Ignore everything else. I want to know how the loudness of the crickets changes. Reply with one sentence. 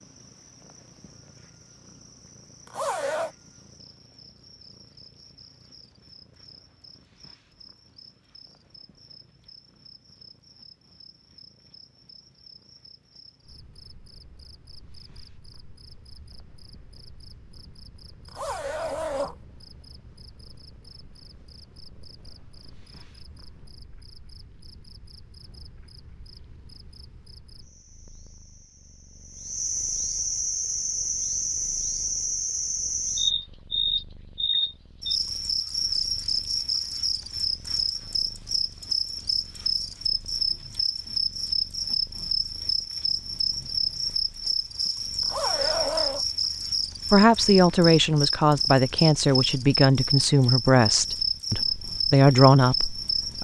The loudness of the crickets goes up.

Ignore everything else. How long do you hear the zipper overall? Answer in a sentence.
You can hear the zipper for 3 seconds altogether.